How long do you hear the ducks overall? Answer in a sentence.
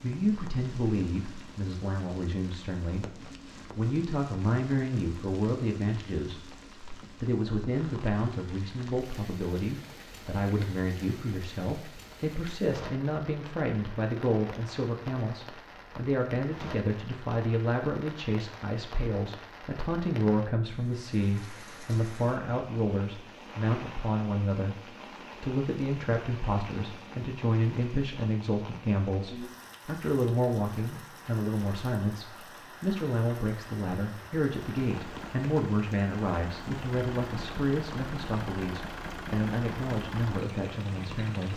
You can't hear the ducks here.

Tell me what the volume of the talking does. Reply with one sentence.
The volume of the talking stays about the same.